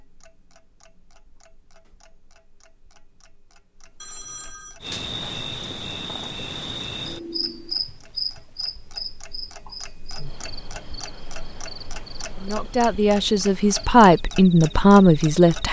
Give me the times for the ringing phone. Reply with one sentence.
The ringing phone can be heard from 4.0 to 4.8 s.